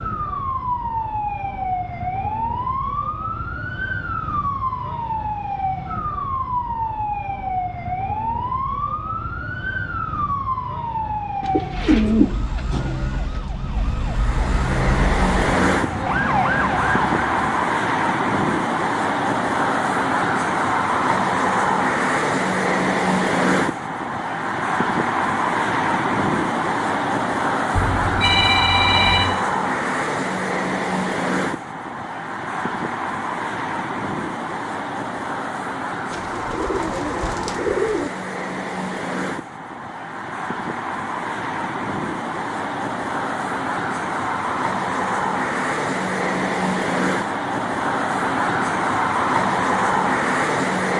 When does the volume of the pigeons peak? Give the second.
12 s.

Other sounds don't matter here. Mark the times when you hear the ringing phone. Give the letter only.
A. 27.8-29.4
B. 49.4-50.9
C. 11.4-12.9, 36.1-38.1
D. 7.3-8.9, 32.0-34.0
A.